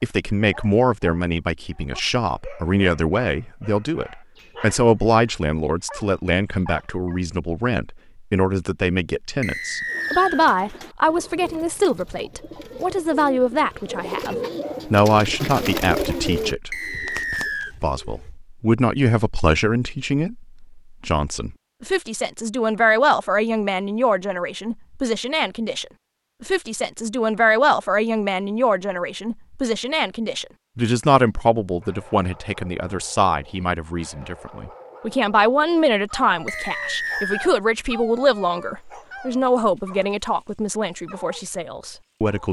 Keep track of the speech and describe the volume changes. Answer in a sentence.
The volume of the speech stays about the same.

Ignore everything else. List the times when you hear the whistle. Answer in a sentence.
You can hear the whistle from 9.4 to 10.4 s, from 16.7 to 17.8 s and from 36.5 to 37.5 s.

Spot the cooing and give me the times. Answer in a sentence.
You can hear the cooing from 9.8 to 18.4 s.